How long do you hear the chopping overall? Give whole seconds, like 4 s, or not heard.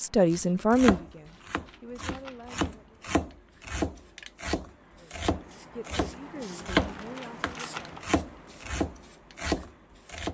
10 s.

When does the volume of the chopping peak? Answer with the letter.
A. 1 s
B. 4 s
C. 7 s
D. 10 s
C.